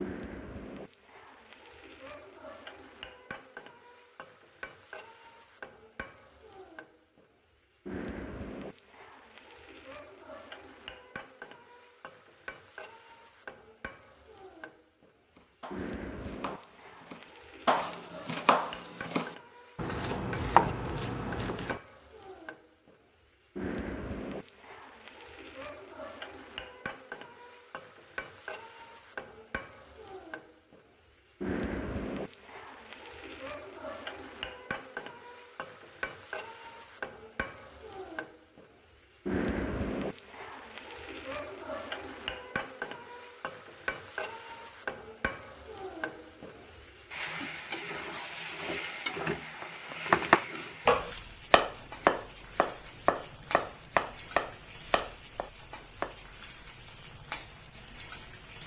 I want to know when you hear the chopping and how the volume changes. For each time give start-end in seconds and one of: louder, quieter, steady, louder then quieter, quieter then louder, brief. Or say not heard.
15.3-21.8 louder
49.6-56.1 quieter.